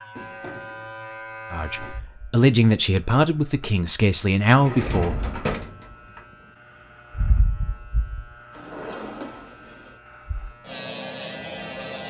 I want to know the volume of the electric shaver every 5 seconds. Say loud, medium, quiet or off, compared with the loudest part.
medium, medium, loud.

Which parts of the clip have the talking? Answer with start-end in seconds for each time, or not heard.
1.5-5.3.